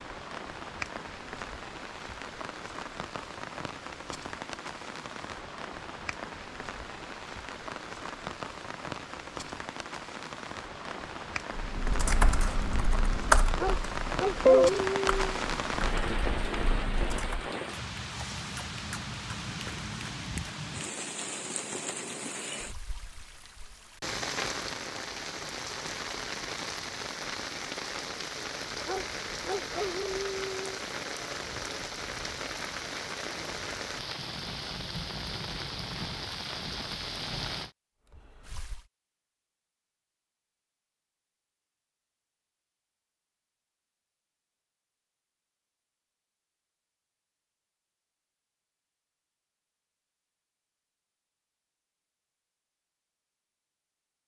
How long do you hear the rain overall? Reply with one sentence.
The rain can be heard for 39 seconds in total.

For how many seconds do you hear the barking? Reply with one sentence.
You can hear the barking for 4 seconds altogether.